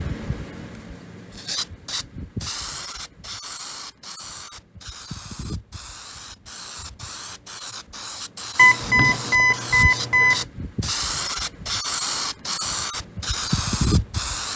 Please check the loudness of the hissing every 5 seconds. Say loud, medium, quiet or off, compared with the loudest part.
medium, medium, loud.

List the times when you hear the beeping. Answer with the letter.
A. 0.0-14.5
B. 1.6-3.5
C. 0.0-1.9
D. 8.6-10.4
D.